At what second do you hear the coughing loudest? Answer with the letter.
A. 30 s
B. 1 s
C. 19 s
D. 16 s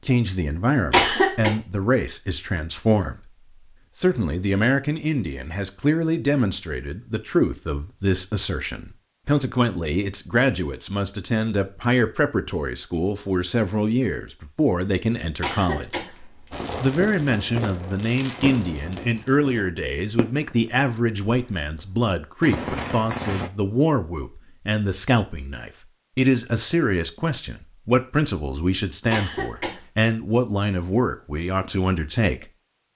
B.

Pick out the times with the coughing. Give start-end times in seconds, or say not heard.
0.9-1.5, 15.4-16.6, 29.1-29.9.